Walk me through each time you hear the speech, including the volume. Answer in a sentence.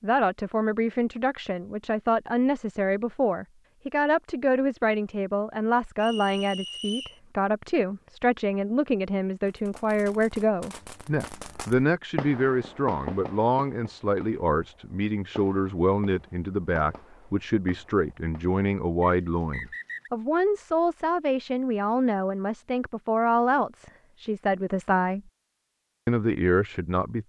The speech can be heard from 0.0 to 25.2 s, at a steady volume; and briefly from 26.1 to 27.2 s.